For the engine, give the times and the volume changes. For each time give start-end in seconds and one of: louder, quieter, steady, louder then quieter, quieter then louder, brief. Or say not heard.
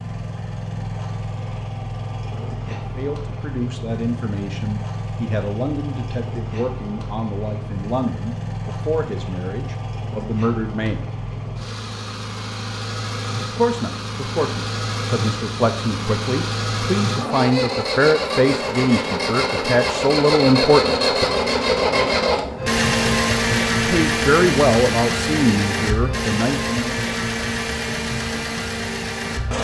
0.0-29.6 louder.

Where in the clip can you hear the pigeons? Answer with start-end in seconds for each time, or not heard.
not heard.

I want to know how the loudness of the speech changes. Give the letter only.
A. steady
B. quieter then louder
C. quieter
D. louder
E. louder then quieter
D.